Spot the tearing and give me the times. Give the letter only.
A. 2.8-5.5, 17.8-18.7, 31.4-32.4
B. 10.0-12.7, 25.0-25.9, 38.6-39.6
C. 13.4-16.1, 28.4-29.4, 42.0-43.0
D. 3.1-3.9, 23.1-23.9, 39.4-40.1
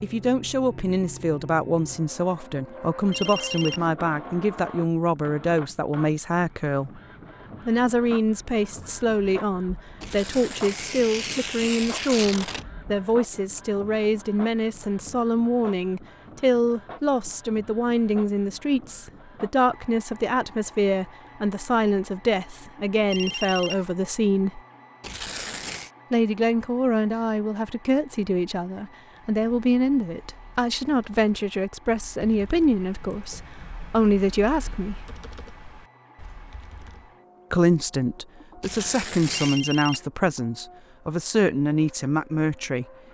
B.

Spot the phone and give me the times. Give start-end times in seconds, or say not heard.
3.1-3.9, 23.1-23.9, 39.4-40.1.